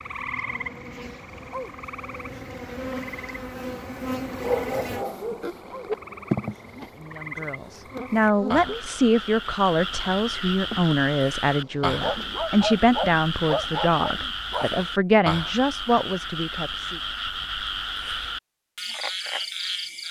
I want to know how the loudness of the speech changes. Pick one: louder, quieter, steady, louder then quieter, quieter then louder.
steady.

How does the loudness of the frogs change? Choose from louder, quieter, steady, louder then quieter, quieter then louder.
louder.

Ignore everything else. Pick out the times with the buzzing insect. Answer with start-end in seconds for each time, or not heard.
0.0-12.5.